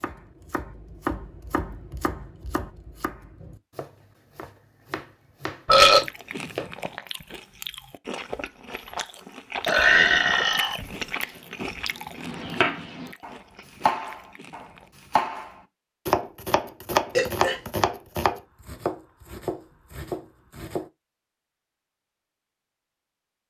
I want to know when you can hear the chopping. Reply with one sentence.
The chopping can be heard from 0.0 to 6.7 s and from 10.8 to 20.9 s.